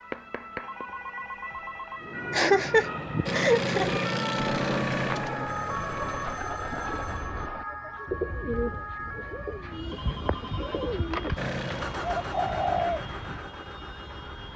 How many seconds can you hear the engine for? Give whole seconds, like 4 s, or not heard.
6 s.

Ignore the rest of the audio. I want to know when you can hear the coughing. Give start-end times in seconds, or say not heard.
2.3-3.9.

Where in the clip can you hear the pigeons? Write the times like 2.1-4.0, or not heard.
2.0-13.4.